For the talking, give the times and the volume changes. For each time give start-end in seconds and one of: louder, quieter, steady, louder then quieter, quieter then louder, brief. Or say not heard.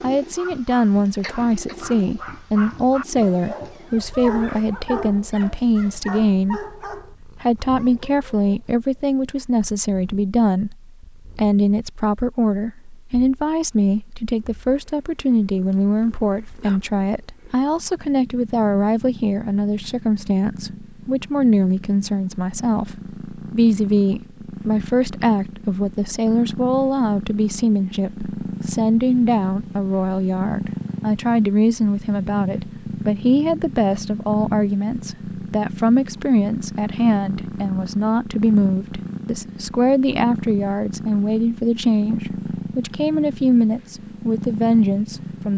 0.0-45.5 steady.